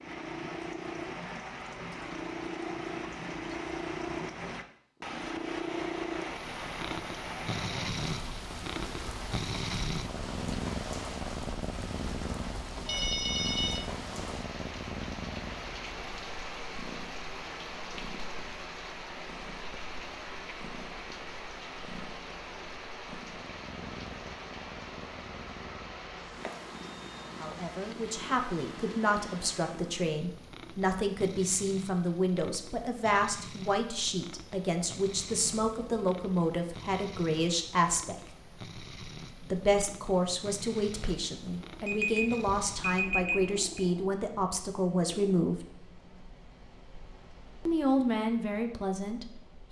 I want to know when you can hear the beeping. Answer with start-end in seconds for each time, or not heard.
12.8-13.8, 26.2-27.2, 41.9-43.5.